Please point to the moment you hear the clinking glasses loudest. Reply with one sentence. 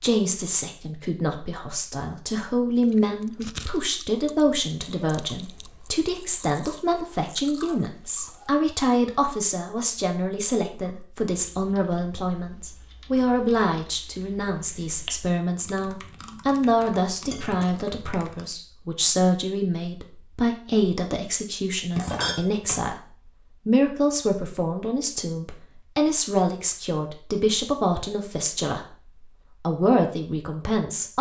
The volume of the clinking glasses peaks at 22 seconds.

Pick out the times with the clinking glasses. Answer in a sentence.
You can hear the clinking glasses from 3.4 to 4.0 s, from 17.2 to 18.2 s and from 21.9 to 22.9 s.